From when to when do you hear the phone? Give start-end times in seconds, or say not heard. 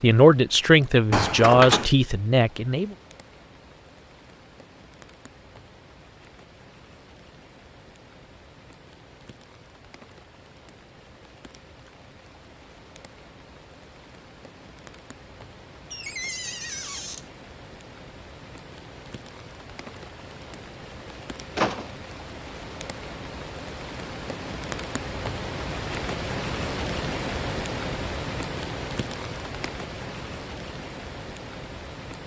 not heard.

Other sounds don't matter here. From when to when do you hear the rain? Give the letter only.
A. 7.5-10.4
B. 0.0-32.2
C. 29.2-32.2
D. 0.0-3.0
B.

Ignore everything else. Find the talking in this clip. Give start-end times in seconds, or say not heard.
0.0-3.0.